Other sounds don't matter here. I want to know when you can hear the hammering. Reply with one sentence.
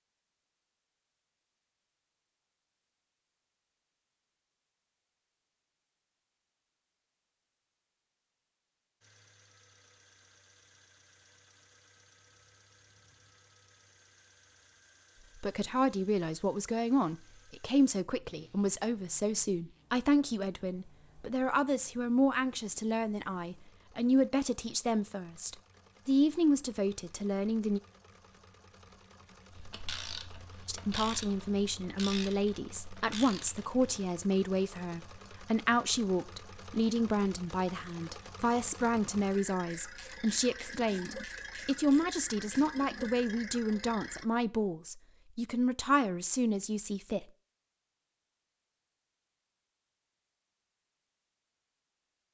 You can't hear the hammering here.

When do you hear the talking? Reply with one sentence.
The talking can be heard from 15.3 to 27.8 s and from 30.6 to 47.2 s.